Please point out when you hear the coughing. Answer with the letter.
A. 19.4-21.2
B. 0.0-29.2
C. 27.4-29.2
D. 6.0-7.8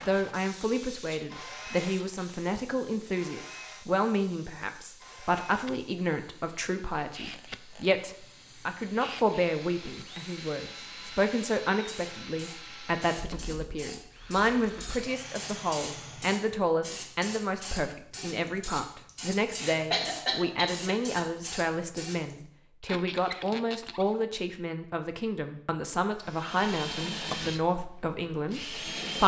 A.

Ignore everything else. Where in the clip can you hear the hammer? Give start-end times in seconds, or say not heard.
not heard.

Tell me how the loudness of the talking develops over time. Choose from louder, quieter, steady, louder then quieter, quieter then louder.
steady.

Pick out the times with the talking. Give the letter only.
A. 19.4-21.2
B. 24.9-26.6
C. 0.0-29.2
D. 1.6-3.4
C.